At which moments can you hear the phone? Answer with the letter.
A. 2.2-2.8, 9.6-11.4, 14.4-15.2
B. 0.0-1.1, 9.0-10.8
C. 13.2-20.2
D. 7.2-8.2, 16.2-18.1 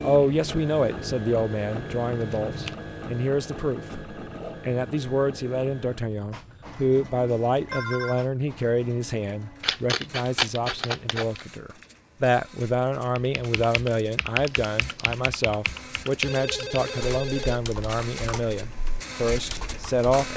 D.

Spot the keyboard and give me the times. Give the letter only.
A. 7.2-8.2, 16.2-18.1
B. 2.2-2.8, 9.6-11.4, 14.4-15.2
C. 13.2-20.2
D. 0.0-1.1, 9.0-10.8
C.